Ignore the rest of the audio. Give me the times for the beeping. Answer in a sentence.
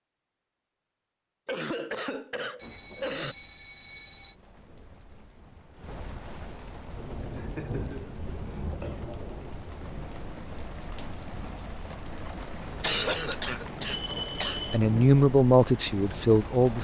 The beeping can be heard from 2.5 to 4.3 s and from 13.8 to 14.8 s.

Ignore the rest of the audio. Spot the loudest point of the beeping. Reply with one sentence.
The volume of the beeping peaks at 14 seconds.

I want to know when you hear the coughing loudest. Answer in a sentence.
The volume of the coughing peaks at 13 seconds.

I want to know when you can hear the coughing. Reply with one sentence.
You can hear the coughing from 1.4 to 3.4 s, from 7.3 to 9.0 s and from 12.8 to 14.6 s.